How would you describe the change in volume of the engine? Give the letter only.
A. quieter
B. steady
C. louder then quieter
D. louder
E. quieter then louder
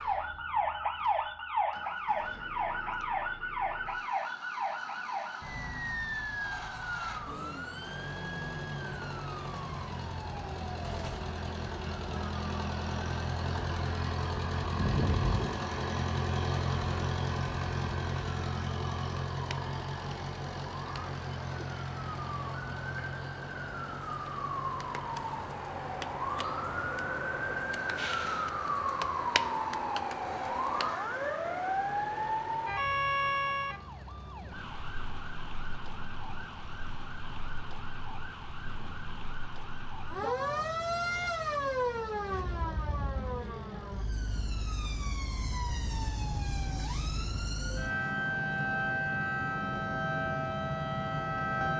C.